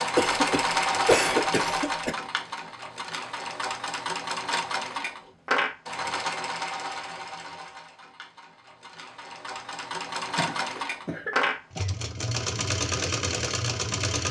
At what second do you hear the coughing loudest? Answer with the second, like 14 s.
1 s.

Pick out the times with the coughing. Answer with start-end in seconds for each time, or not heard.
0.1-2.1, 10.3-11.9.